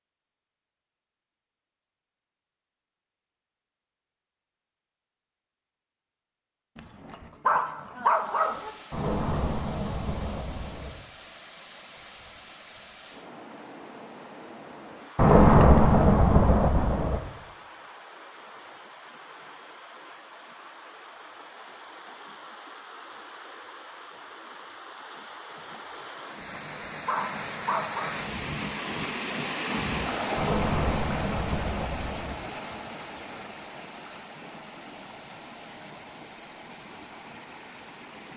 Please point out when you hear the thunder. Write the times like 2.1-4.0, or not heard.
8.9-10.9, 15.2-17.2, 30.4-32.4.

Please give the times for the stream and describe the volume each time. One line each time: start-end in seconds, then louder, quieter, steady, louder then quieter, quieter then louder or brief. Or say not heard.
8.1-38.3 louder then quieter.